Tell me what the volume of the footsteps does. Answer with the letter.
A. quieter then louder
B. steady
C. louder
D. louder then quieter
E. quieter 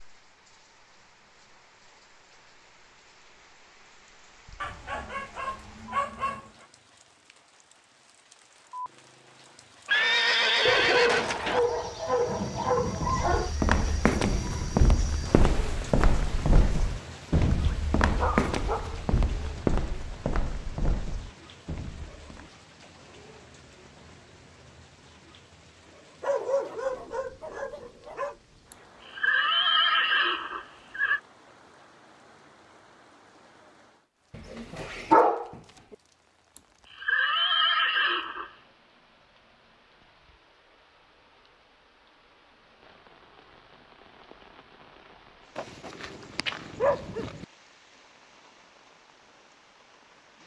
E.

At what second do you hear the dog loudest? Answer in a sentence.
The volume of the dog peaks at 35 seconds.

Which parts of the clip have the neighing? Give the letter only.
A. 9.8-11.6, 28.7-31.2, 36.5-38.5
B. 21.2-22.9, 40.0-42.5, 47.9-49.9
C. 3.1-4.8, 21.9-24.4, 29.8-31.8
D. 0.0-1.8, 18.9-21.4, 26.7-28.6
A.